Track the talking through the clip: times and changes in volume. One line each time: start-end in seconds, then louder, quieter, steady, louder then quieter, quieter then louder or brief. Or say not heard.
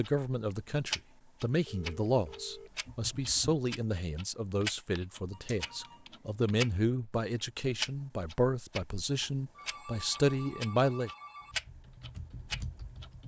0.0-11.1 steady.